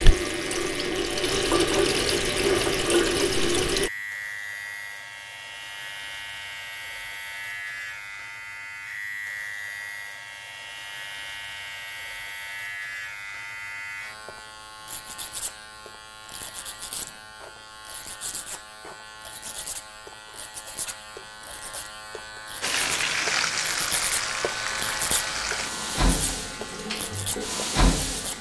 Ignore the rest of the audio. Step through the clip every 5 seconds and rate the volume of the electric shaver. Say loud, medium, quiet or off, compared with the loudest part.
loud, loud, loud, medium, loud, loud.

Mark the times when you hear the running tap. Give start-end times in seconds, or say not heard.
0.0-3.9, 22.6-28.3.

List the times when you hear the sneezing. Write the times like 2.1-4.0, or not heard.
not heard.